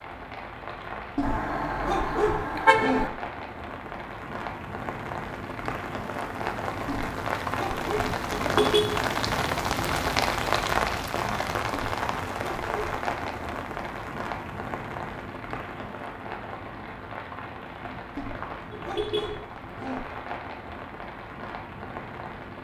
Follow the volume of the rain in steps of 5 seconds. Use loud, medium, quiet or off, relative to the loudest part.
medium, loud, loud, medium, medium.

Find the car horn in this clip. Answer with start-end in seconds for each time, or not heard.
1.2-3.1, 8.3-9.1, 18.7-19.4.